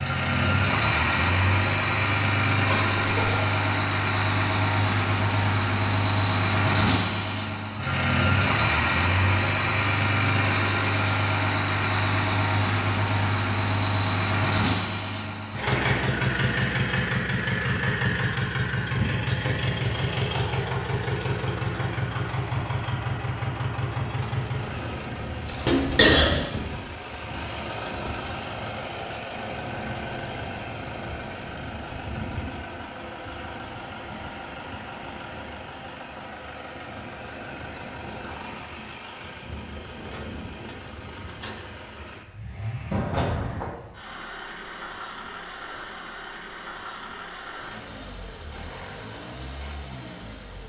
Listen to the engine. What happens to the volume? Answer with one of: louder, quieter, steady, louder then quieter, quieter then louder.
quieter.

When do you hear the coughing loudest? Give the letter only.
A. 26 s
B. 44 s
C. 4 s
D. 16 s
A.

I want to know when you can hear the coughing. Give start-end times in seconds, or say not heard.
2.6-3.5, 25.4-26.4, 42.9-43.8.